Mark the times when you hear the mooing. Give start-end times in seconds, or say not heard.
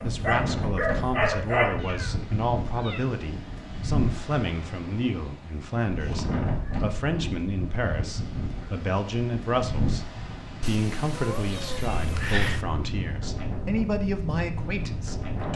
not heard.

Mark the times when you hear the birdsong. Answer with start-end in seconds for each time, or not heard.
not heard.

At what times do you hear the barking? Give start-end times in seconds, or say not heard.
0.0-1.7.